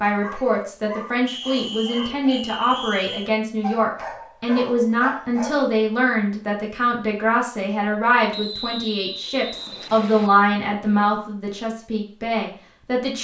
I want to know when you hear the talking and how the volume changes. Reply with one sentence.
The talking can be heard from 0.0 to 13.1 s, at a steady volume.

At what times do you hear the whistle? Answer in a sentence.
The whistle can be heard from 1.2 to 3.3 s and from 8.3 to 10.3 s.